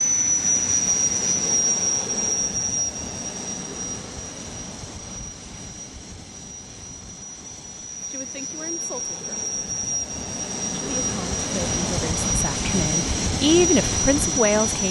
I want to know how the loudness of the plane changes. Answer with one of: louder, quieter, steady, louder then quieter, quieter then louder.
quieter then louder.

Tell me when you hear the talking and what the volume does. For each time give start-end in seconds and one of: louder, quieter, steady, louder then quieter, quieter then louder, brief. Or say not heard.
8.1-9.4 brief
10.7-14.8 louder then quieter.